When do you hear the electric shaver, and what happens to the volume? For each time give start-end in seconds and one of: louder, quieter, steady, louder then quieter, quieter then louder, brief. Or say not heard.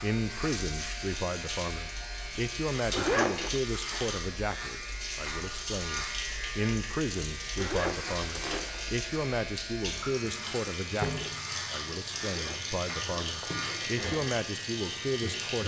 0.0-15.6 steady.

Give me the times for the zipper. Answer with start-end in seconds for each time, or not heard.
2.9-3.6, 7.5-8.8, 12.2-14.0.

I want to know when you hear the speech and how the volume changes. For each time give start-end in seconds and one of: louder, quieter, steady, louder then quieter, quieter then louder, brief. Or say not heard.
0.0-15.6 steady.